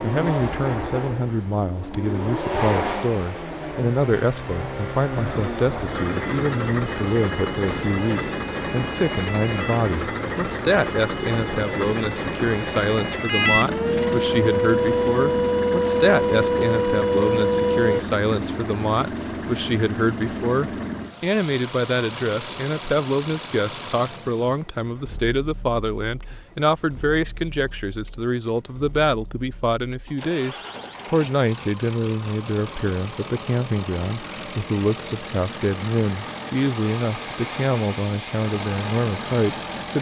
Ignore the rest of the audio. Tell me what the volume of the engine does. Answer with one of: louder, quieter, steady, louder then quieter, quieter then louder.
quieter then louder.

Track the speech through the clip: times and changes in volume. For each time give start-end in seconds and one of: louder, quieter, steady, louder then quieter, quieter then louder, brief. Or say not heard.
0.0-39.9 steady.